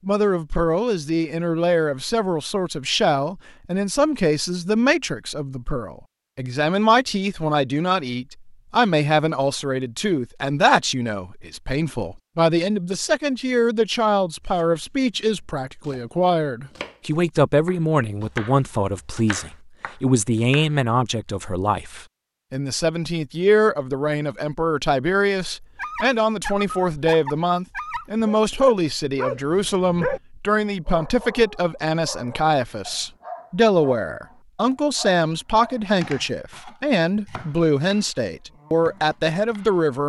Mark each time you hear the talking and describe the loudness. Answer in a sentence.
You can hear the talking from 0.1 to 40.0 s, at a steady volume.